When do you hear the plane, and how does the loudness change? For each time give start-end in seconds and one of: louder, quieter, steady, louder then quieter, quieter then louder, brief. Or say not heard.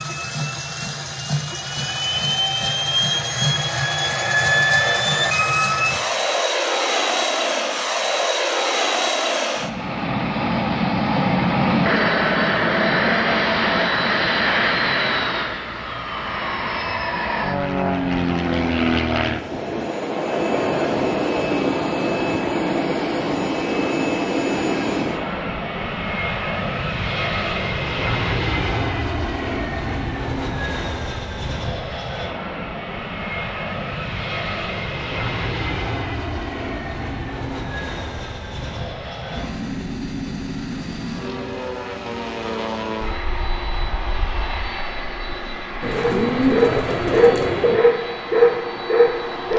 0.0-49.5 quieter.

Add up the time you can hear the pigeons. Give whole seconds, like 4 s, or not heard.
2 s.